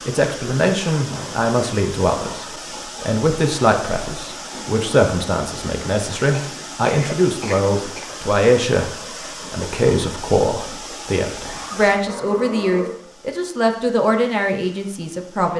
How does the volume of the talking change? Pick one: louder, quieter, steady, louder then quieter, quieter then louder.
steady.